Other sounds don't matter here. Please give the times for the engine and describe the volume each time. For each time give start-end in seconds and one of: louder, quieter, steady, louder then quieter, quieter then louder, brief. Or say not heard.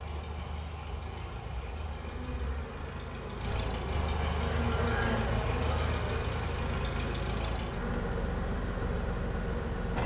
0.0-10.0 louder.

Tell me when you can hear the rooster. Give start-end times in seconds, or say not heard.
4.5-6.5.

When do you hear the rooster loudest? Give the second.
5 s.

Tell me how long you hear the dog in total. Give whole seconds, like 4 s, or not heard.
not heard.